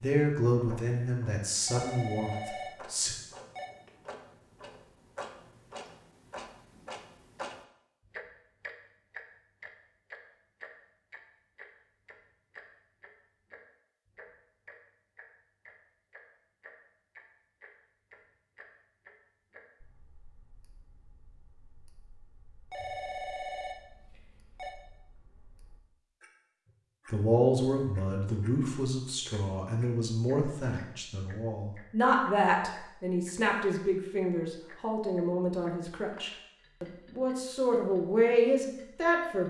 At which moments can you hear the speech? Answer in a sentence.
The speech can be heard from 0.0 to 3.1 s and from 27.1 to 39.4 s.